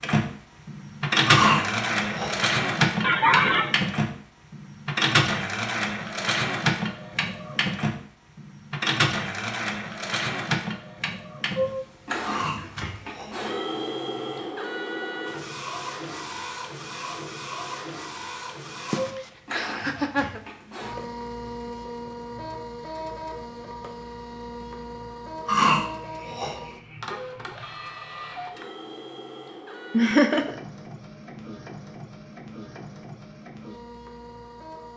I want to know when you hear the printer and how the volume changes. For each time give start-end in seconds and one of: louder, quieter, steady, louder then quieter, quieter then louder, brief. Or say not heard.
0.0-34.9 quieter.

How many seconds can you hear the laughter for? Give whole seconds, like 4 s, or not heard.
3 s.